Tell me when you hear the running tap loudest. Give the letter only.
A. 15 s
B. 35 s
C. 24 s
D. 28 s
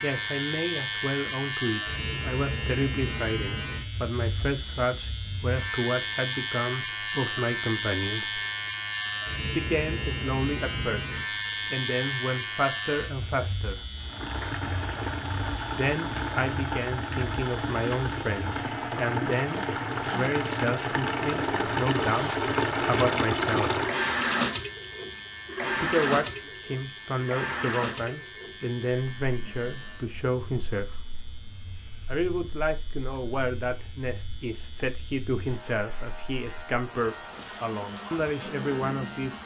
C.